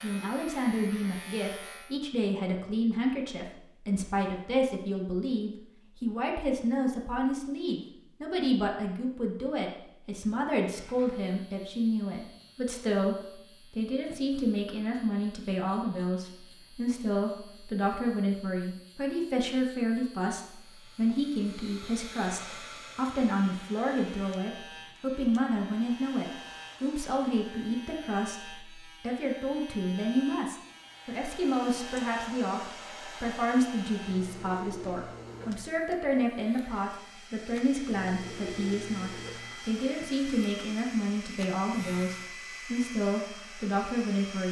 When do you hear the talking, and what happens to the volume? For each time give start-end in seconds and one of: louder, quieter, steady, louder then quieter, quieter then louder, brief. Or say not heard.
0.0-44.4 steady.